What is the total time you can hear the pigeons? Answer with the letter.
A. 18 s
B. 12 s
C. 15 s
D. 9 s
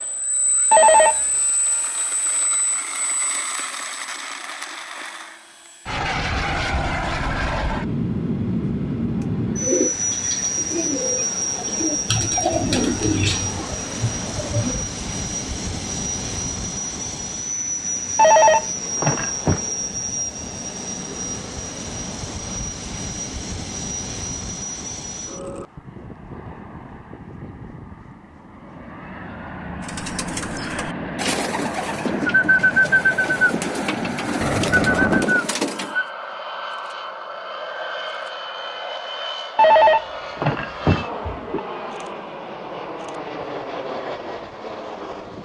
B.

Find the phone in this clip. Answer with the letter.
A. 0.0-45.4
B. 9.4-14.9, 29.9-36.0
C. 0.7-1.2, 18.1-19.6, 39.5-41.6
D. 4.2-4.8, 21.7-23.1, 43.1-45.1
C.